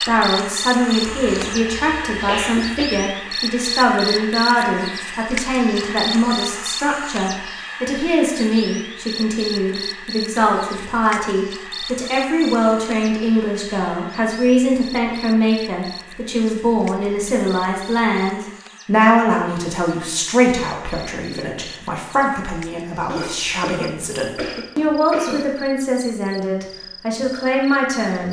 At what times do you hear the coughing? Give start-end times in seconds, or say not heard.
1.1-3.0, 23.1-25.5.